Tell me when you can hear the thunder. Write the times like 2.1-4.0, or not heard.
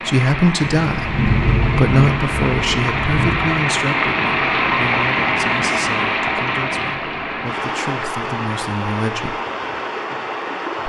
0.6-3.5.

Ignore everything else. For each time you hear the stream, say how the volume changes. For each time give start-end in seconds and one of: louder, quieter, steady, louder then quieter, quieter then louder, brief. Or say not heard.
0.0-10.8 louder then quieter.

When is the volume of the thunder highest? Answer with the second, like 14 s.
1 s.